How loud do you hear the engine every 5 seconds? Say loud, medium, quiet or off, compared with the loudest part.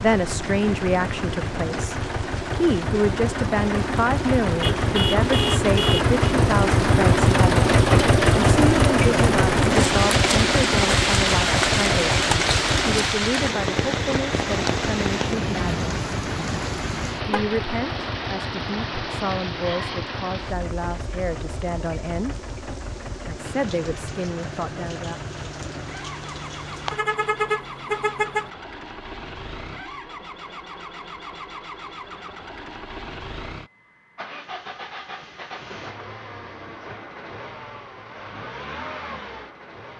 medium, loud, medium, quiet, quiet, quiet, quiet, quiet.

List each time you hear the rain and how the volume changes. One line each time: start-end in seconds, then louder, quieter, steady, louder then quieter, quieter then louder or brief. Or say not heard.
0.0-27.0 louder then quieter.